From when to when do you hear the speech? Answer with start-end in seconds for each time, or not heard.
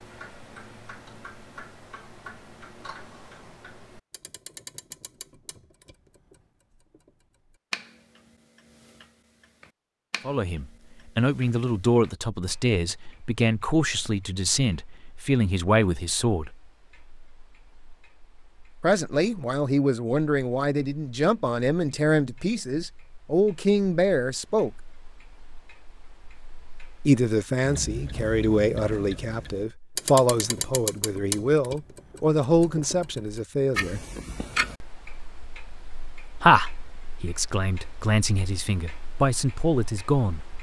10.2-16.5, 18.8-24.7, 27.1-34.0, 36.4-40.4.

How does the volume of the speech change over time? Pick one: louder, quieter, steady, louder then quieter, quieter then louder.
steady.